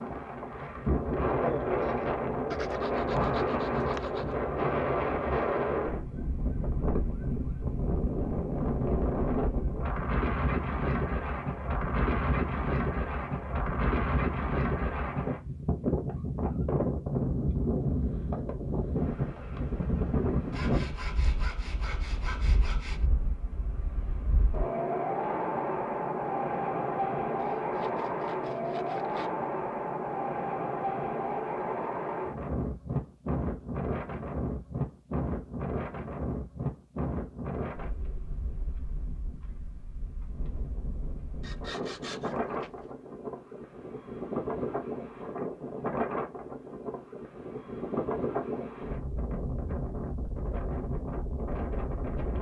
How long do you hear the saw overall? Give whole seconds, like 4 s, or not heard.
8 s.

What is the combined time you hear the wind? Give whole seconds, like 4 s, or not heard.
52 s.